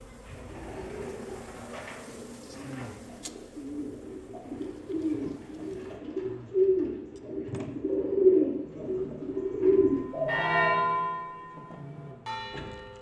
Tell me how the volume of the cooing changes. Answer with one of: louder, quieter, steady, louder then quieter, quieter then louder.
louder.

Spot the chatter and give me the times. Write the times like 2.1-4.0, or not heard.
not heard.